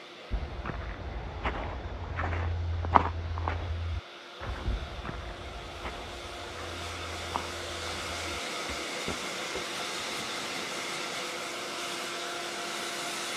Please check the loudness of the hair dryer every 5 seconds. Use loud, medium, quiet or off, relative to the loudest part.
quiet, loud, loud.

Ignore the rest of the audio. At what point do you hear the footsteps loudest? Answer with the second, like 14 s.
3 s.